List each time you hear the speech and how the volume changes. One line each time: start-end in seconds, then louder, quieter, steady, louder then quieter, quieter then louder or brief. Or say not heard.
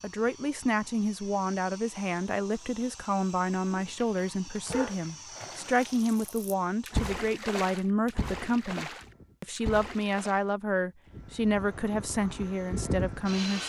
0.0-13.6 steady.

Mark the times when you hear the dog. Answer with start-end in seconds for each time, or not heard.
3.8-5.0.